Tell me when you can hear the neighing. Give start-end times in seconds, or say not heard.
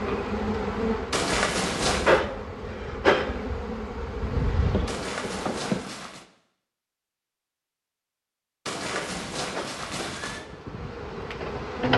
1.1-2.2, 4.8-6.2, 8.7-10.4.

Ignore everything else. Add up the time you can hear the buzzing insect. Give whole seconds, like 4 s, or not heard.
9 s.